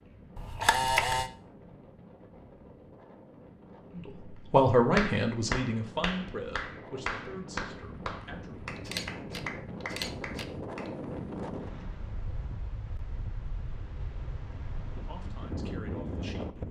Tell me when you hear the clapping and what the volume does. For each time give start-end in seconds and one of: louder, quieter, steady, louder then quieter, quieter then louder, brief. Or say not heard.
5.0-10.9 quieter.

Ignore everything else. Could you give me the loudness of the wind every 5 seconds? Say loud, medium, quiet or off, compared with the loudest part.
quiet, medium, loud, loud.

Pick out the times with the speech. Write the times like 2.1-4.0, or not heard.
4.0-8.7, 14.9-16.6.